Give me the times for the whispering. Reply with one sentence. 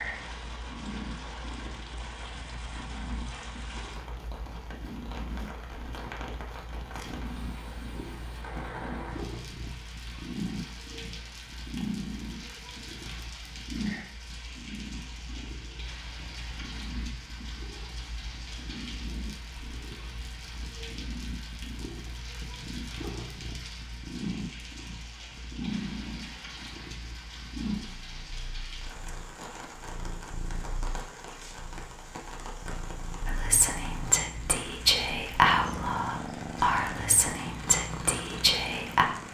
You can hear the whispering from 33.2 to 39.0 s.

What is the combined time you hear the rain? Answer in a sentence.
You can hear the rain for 39 seconds altogether.